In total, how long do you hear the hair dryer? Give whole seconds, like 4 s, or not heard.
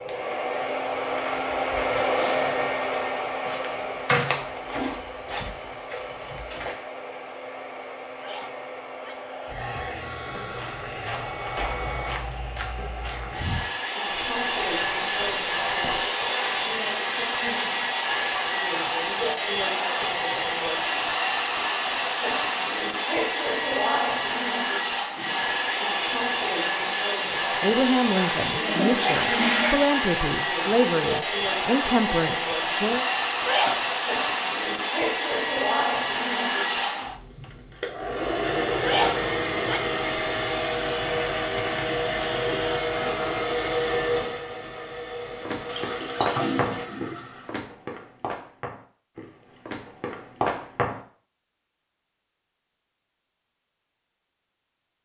47 s.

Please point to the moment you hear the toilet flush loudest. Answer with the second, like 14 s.
29 s.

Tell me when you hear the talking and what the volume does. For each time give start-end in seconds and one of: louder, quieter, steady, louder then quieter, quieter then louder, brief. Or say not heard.
27.3-33.0 steady.